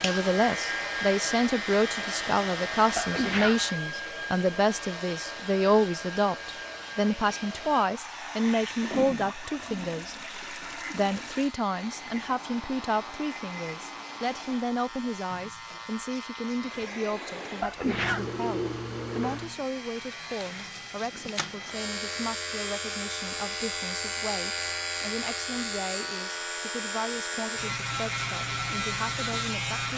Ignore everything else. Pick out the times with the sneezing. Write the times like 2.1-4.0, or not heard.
3.0-3.6, 17.6-18.2.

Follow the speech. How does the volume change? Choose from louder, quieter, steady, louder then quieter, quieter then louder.
quieter.